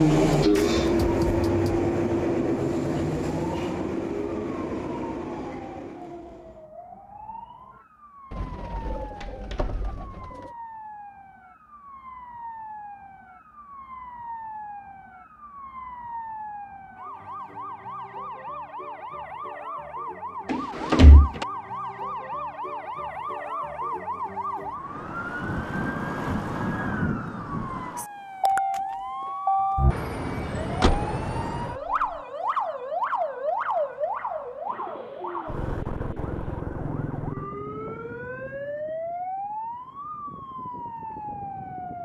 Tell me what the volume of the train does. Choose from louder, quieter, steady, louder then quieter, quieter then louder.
quieter.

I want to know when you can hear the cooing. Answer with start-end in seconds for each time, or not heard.
8.3-10.6, 34.6-36.6.